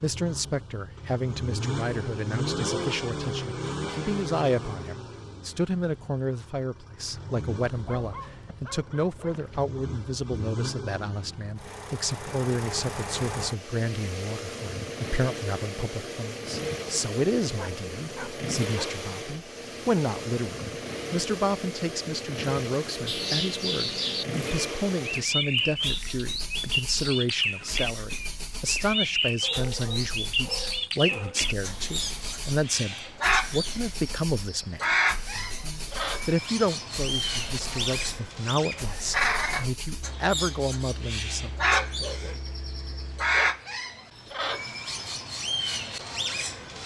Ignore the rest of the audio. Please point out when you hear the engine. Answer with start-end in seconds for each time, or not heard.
0.0-43.5.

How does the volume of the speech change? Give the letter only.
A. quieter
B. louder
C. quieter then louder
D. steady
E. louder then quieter
D.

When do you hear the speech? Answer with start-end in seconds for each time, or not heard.
0.0-41.5.